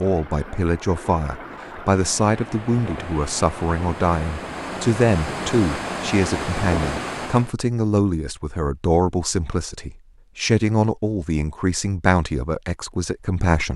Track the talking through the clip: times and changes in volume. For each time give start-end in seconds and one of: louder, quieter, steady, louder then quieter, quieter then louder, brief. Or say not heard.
0.0-13.7 steady.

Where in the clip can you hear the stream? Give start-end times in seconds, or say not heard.
0.0-7.5.